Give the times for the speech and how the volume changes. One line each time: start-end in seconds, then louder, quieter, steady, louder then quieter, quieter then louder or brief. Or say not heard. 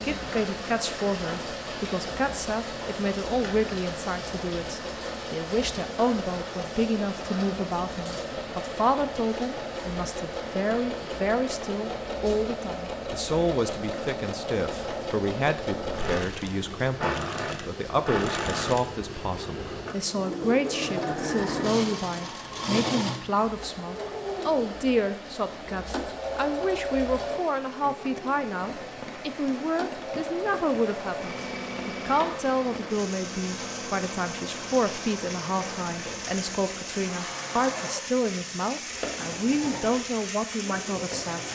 0.0-41.5 steady.